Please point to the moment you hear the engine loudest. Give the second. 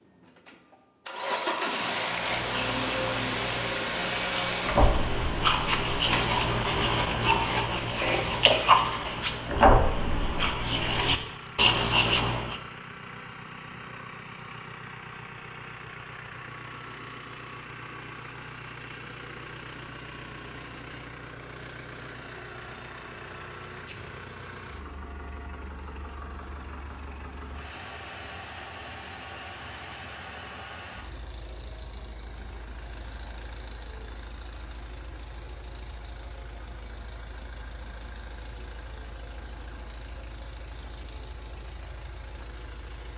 2 s.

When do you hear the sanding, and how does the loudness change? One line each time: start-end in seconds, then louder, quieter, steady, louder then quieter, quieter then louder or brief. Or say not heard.
2.1-12.6 louder.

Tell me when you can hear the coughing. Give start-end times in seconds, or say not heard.
8.0-9.1.